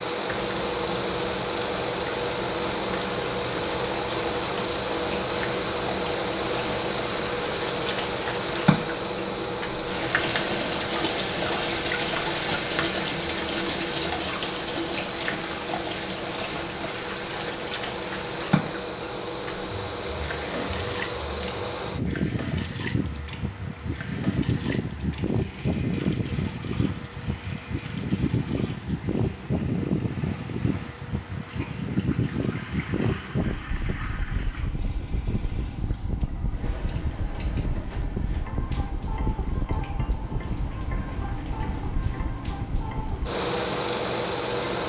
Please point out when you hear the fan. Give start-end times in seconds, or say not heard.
0.0-44.8.